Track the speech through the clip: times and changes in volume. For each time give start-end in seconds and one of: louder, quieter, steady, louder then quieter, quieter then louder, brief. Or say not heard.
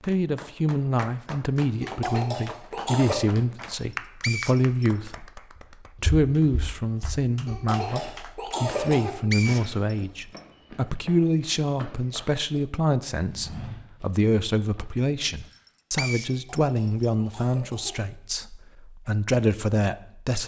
0.1-20.4 steady.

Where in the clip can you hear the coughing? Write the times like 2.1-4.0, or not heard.
1.8-3.2, 7.5-9.2, 16.2-18.1.